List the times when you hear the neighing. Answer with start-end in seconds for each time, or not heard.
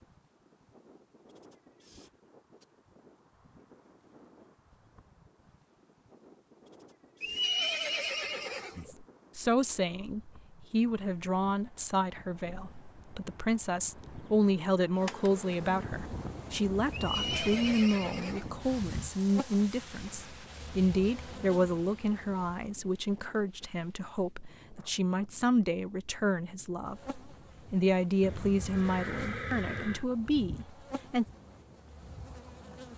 7.2-8.9, 16.9-18.6, 28.2-30.1.